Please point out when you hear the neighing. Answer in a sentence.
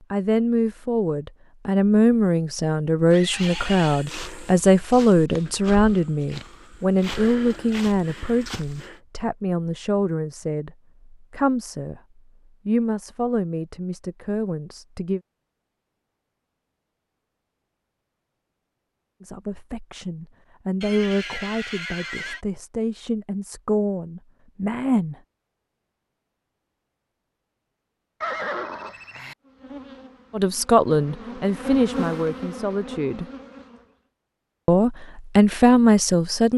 The neighing can be heard from 3.1 to 4.1 s, from 20.8 to 22.4 s and from 28.2 to 29.4 s.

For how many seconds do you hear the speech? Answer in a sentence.
You can hear the speech for 26 seconds altogether.